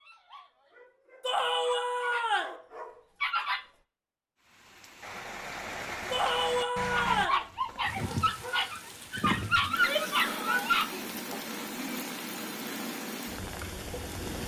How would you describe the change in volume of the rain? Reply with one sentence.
The volume of the rain stays about the same.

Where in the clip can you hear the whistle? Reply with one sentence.
The whistle can't be heard in this clip.